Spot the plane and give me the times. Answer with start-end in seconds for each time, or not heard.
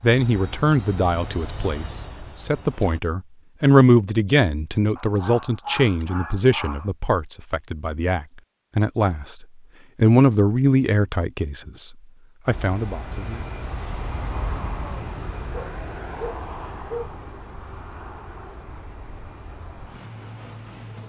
0.0-3.0, 12.4-21.0.